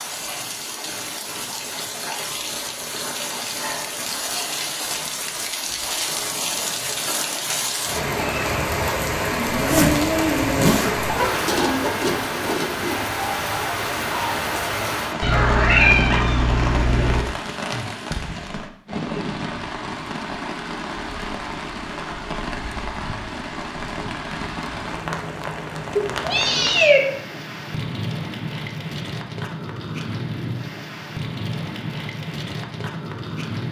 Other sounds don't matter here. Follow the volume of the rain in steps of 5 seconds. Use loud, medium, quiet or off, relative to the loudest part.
medium, loud, loud, medium, medium, medium, medium.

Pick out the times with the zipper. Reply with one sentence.
You can hear the zipper from 9.6 to 11.1 s.